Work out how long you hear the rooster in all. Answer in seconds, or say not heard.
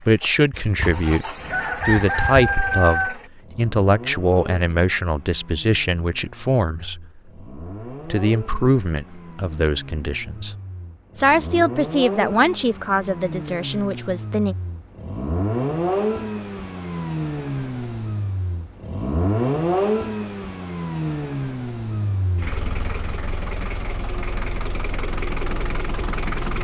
3 s.